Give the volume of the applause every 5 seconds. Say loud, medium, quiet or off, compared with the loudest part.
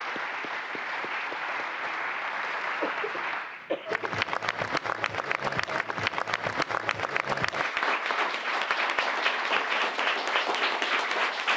medium, loud, loud.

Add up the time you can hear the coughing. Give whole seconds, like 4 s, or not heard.
2 s.